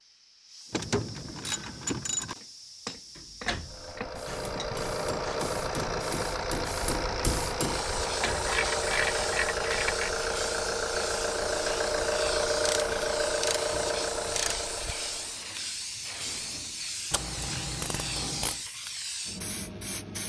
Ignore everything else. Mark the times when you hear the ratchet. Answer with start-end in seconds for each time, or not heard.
0.7-2.4, 4.2-6.2, 8.2-10.1, 12.7-14.6, 17.1-18.6.